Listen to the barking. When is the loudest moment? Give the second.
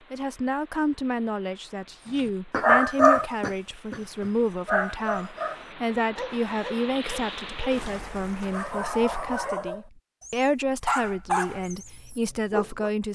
3 s.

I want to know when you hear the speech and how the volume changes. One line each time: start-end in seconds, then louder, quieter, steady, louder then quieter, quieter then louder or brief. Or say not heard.
0.1-13.1 steady.